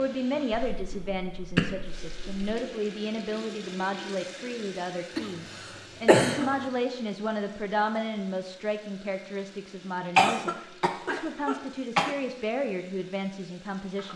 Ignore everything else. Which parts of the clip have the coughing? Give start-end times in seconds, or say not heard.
0.5-2.3, 5.2-6.7, 10.2-12.2.